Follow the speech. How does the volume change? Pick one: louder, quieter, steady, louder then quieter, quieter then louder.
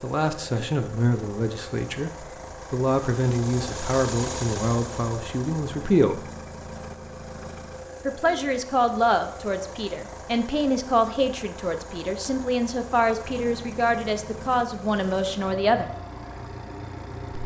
steady.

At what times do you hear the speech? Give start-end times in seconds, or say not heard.
0.0-6.2, 8.1-15.8.